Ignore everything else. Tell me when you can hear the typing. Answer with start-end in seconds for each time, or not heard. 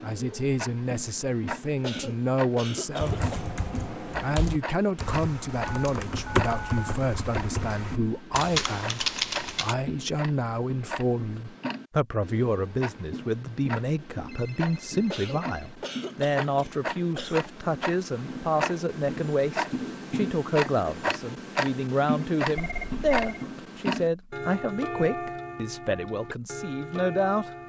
3.0-9.8.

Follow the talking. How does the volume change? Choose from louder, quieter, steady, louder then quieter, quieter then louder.
steady.